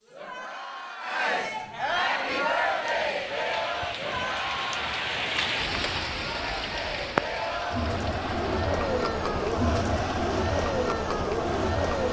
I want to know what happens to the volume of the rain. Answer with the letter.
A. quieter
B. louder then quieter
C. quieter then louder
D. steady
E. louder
B.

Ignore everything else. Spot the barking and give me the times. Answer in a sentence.
You can't hear the barking here.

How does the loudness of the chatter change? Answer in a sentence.
The volume of the chatter goes down, then up.